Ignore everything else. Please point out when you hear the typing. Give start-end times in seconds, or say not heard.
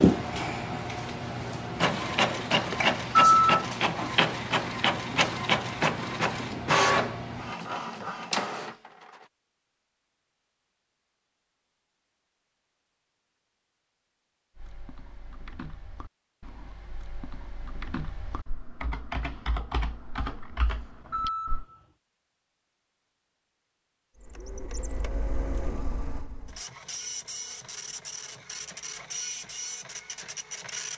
14.6-21.6.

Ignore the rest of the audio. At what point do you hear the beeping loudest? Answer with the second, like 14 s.
3 s.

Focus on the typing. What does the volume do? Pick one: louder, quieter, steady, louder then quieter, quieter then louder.
louder.